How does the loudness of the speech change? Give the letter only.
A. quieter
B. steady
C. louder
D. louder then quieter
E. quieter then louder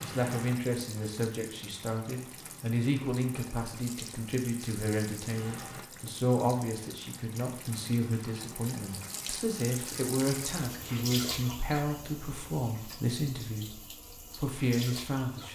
B.